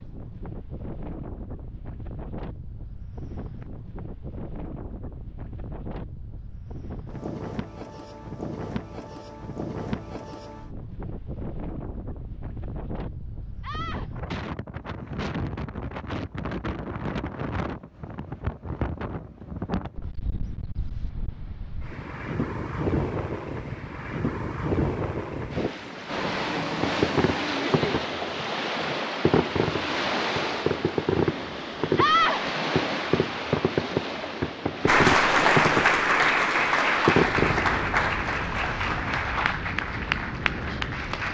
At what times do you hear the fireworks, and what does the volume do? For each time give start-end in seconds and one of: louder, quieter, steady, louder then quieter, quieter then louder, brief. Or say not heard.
26.7-37.8 louder.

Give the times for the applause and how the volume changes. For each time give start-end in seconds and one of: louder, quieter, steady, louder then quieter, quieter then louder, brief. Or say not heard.
34.9-41.2 quieter.